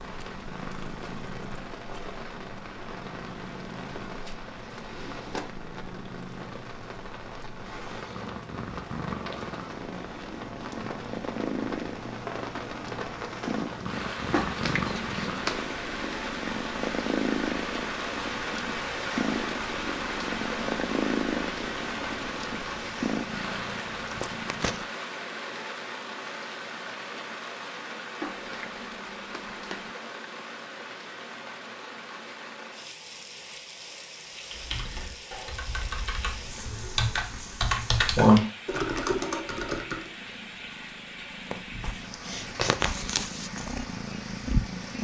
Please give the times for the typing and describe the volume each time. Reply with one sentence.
You can hear the typing from 34.5 to 40.1 s, getting louder then quieter.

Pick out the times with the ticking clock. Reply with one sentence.
You can't hear the ticking clock here.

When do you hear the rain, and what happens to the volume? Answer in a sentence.
You can hear the rain from 0.0 to 44.9 s, getting louder then quieter.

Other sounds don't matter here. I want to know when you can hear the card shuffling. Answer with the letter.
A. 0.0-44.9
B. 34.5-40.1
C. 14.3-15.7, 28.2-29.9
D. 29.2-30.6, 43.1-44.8
C.